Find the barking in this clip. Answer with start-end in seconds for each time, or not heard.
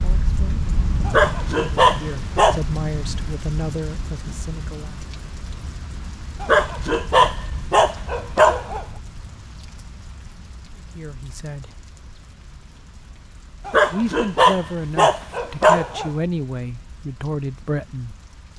1.1-2.6, 6.4-8.8, 13.7-16.1.